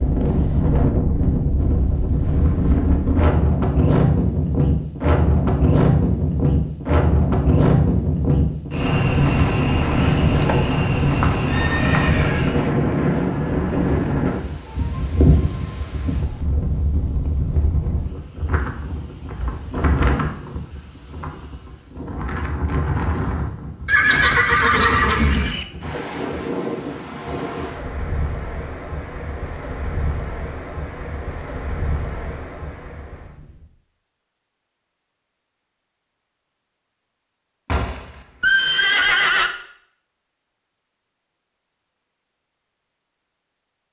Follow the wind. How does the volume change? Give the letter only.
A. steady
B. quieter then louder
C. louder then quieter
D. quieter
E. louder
D.